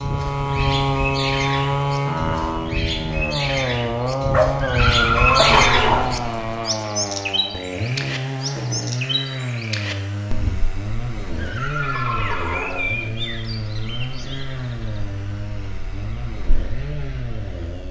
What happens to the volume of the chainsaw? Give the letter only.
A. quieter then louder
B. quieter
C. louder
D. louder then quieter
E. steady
B.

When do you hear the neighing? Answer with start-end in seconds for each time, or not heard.
4.6-6.2, 11.3-12.9.